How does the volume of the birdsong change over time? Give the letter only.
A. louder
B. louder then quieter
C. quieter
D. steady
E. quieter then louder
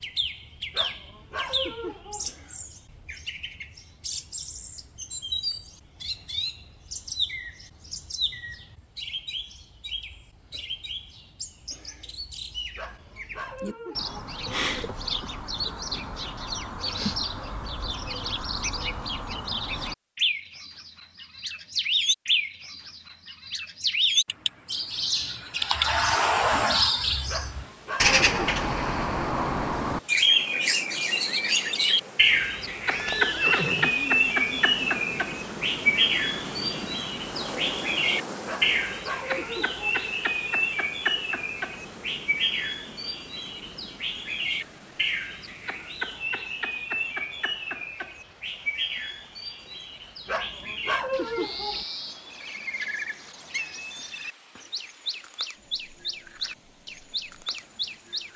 B.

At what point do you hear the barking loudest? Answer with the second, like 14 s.
51 s.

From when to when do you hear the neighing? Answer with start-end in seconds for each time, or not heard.
32.9-34.9.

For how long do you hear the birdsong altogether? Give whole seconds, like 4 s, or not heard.
58 s.